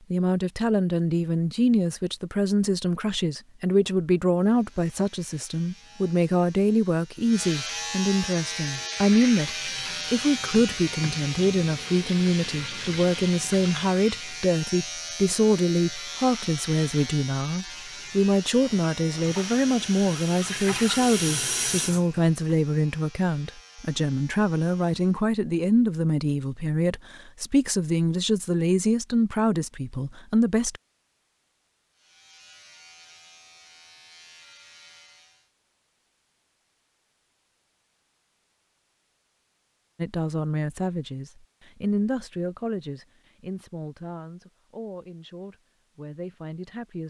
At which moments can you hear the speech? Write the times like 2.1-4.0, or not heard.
0.1-30.8, 40.0-47.0.